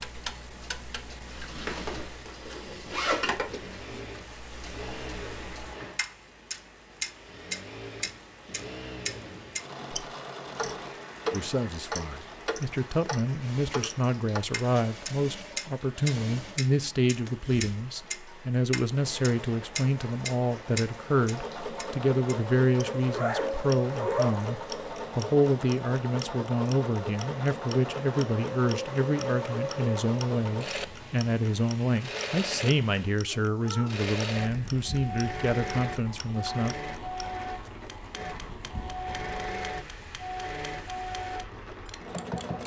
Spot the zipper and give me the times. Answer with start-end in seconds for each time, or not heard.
1.6-3.4, 22.9-24.5.